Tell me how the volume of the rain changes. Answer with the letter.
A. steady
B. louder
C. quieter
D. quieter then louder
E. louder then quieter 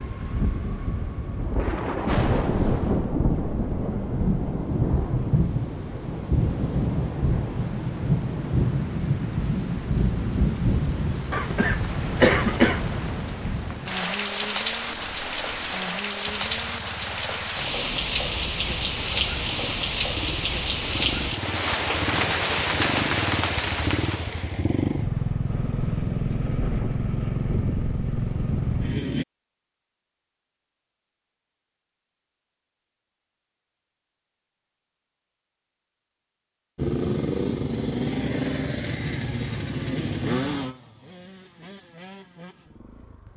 A.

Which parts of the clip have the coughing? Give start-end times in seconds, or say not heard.
11.3-12.8.